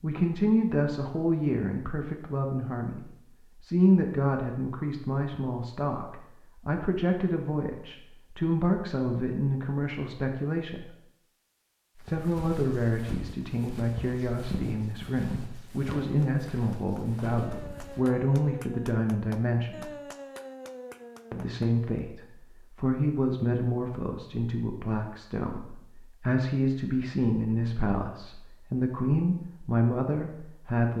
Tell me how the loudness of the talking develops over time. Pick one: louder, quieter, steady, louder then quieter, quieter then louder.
steady.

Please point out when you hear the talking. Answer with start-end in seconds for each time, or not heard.
0.0-10.9, 12.1-19.9, 21.3-30.9.